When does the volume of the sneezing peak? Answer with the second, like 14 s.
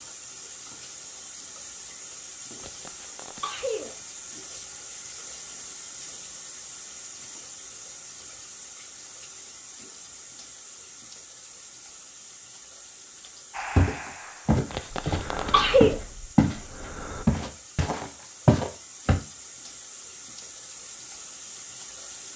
16 s.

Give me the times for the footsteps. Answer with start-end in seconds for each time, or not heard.
13.8-16.6, 17.2-19.2.